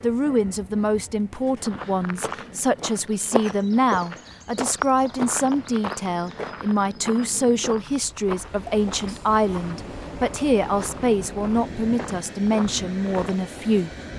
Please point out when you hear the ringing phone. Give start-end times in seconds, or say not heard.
not heard.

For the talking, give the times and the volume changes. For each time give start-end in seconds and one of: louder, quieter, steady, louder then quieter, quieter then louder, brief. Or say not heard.
0.0-13.9 steady.